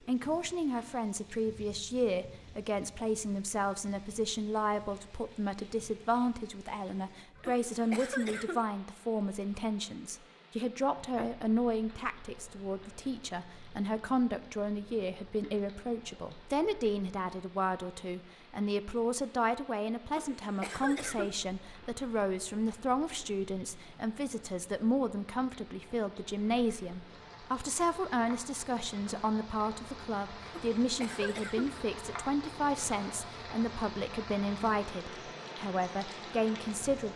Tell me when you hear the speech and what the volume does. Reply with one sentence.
The speech can be heard from 0.1 to 37.1 s, at a steady volume.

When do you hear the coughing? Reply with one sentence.
You can hear the coughing from 7.5 to 8.7 s, from 20.1 to 21.4 s and from 30.5 to 31.7 s.